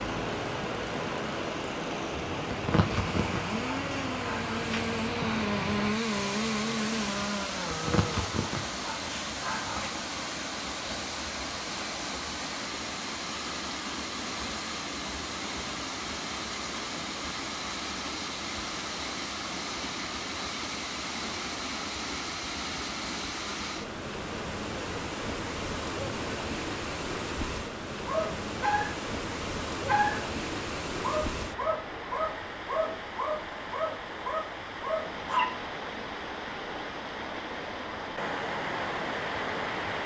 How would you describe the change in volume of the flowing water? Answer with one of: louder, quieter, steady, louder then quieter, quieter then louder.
steady.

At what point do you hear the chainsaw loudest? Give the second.
6 s.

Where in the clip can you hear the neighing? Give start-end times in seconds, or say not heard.
not heard.